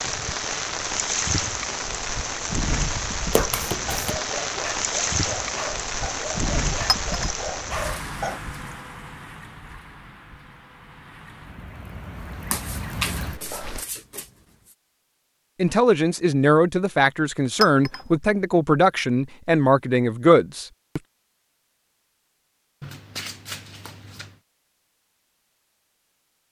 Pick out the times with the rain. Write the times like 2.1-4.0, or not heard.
0.0-13.8.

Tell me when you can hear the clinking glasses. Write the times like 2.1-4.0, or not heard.
6.8-7.3, 17.6-18.1.